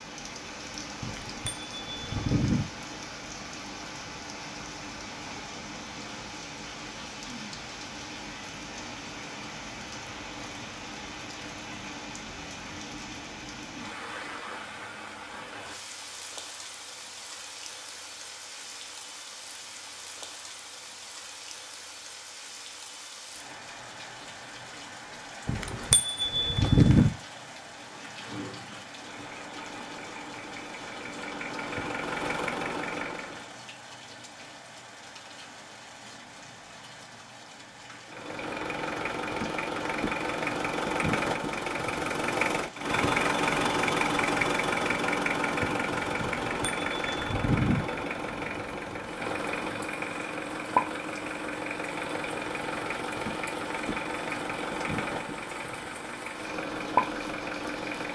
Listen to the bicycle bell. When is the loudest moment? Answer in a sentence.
The volume of the bicycle bell peaks at 27 seconds.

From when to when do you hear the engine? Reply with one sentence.
You can hear the engine from 27.8 to 33.6 s and from 38.0 to 58.1 s.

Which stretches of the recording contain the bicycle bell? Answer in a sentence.
The bicycle bell can be heard from 1.0 to 2.6 s, from 25.4 to 27.1 s and from 46.2 to 47.8 s.